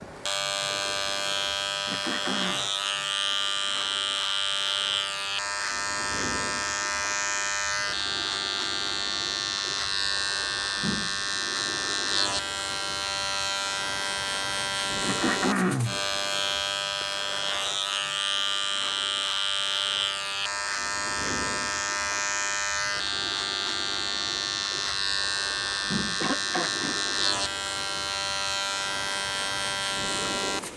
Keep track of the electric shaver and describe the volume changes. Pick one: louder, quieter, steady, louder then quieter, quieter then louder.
steady.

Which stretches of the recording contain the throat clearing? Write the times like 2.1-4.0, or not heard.
1.9-2.6, 15.0-16.0, 26.2-27.0.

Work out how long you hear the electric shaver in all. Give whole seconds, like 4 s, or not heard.
31 s.